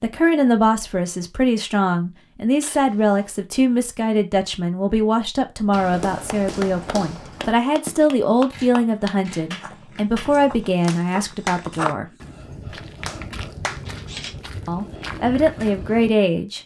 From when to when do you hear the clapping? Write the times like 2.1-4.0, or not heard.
6.2-13.8.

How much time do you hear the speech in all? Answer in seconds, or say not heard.
14 s.